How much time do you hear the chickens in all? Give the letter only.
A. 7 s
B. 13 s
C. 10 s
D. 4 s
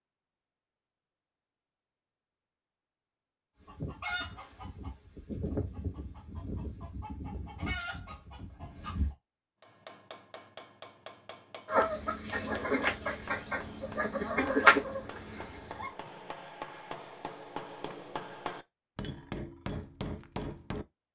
C.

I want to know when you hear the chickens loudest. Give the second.
15 s.